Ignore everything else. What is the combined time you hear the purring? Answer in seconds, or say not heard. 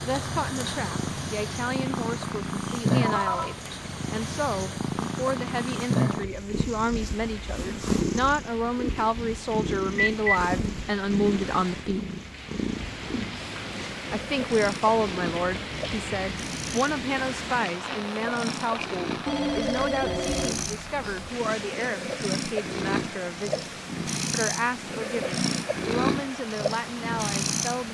28 s.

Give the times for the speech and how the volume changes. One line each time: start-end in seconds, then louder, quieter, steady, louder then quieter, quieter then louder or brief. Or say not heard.
0.0-12.0 louder
14.1-27.8 quieter.